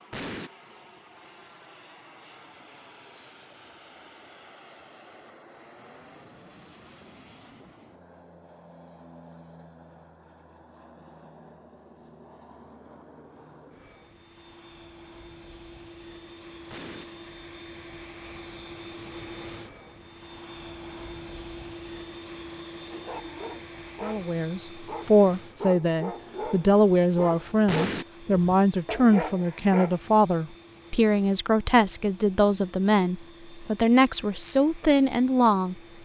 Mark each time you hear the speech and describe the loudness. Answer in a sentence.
You can hear the speech from 24.0 to 35.8 s, at a steady volume.